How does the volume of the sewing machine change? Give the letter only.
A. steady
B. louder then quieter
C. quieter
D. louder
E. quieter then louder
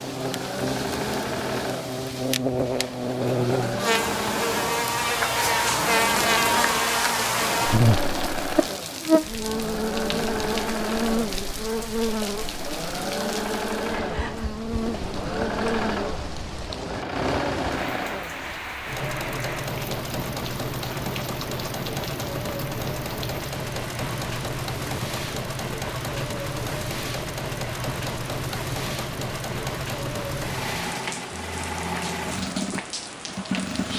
A.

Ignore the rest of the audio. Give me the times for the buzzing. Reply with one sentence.
You can hear the buzzing from 0.0 to 18.1 s.